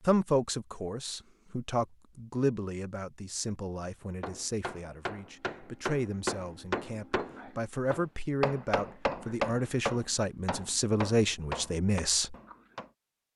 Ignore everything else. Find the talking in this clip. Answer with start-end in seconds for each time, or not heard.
0.1-12.3.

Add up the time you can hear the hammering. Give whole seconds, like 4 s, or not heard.
9 s.